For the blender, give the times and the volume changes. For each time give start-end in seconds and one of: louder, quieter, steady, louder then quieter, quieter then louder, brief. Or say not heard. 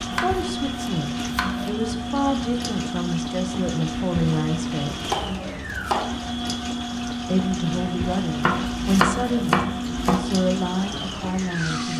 0.0-11.9 steady.